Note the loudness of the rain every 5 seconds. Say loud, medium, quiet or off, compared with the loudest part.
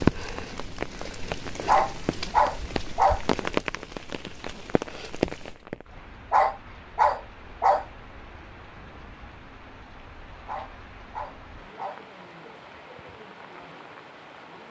loud, medium, quiet.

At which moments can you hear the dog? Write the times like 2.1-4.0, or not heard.
1.6-3.2, 6.3-7.8, 10.4-12.0.